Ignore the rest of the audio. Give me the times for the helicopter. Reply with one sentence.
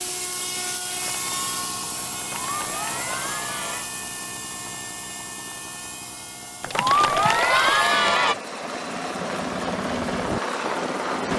You can hear the helicopter from 0.0 to 11.3 s.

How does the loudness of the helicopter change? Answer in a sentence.
The volume of the helicopter goes down, then up.